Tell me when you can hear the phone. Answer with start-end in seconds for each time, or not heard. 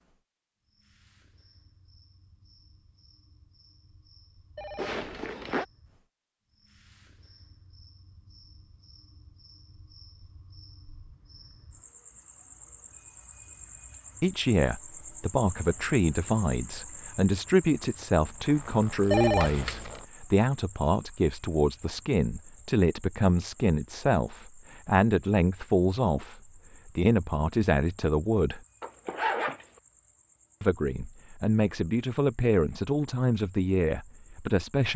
4.5-5.6, 19.1-20.0.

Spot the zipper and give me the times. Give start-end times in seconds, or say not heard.
4.8-5.7, 18.1-20.1, 28.8-29.6.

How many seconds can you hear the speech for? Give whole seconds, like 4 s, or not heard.
19 s.